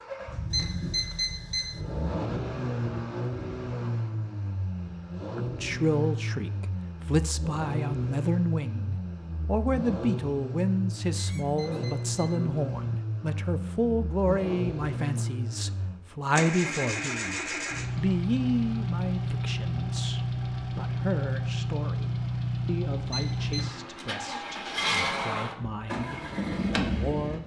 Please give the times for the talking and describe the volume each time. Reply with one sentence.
The talking can be heard from 5.3 to 27.4 s, getting quieter.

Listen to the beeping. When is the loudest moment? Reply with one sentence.
The loudest moment of the beeping is at 1 second.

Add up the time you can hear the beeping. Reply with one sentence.
You can hear the beeping for 3 seconds altogether.